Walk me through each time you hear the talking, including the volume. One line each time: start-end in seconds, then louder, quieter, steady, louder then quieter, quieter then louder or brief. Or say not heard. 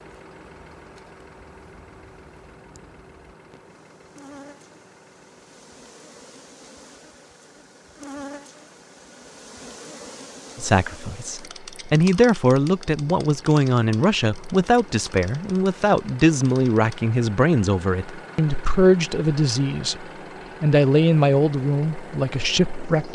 10.6-23.0 steady.